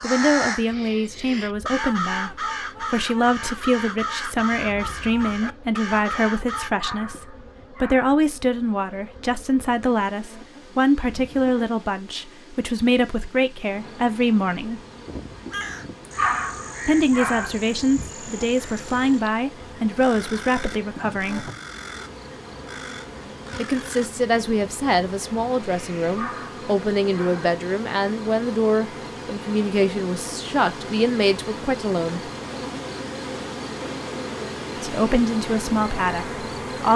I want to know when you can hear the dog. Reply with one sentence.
You can hear the dog from 6.7 to 8.1 s, from 16.1 to 17.6 s and from 26.0 to 27.6 s.